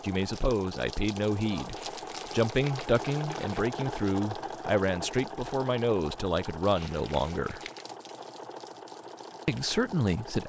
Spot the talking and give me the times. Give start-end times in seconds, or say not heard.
0.0-7.6, 9.4-10.4.